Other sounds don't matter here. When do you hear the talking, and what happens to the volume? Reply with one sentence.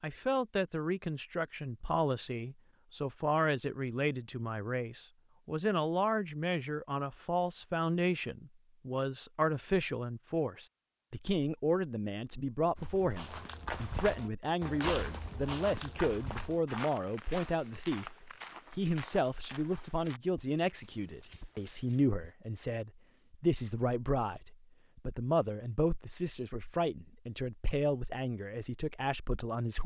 You can hear the talking from 0.0 to 29.8 s, at a steady volume.